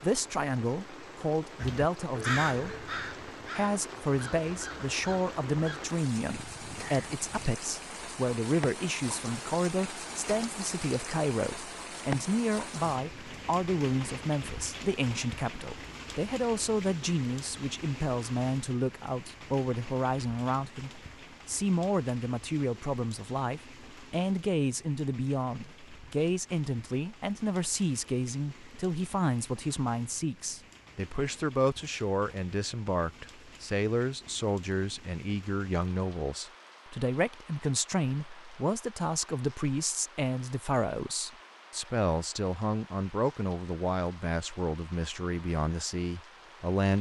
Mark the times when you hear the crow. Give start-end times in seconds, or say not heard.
1.6-7.5.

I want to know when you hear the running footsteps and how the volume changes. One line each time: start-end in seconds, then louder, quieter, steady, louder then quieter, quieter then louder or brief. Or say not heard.
not heard.